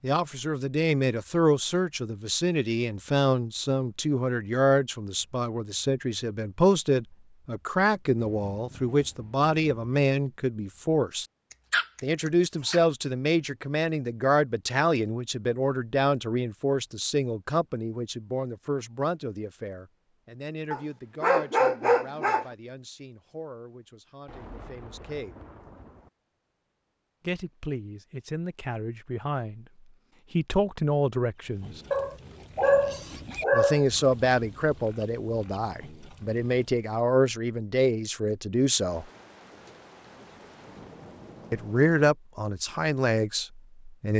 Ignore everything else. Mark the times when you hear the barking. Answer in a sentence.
The barking can be heard from 11.7 to 12.8 s, from 20.7 to 22.4 s and from 31.9 to 33.9 s.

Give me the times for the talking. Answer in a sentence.
You can hear the talking from 0.0 to 11.2 s, from 12.0 to 25.4 s, from 27.2 to 31.8 s, from 33.5 to 39.0 s and from 41.5 to 44.1 s.